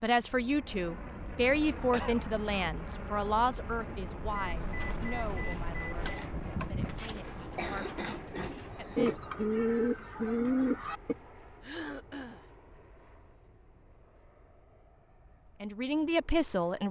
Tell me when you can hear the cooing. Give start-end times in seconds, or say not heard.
4.6-11.2.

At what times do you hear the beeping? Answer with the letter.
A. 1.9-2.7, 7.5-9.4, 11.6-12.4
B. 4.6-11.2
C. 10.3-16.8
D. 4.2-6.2
D.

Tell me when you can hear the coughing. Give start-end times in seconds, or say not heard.
1.9-2.7, 7.5-9.4, 11.6-12.4.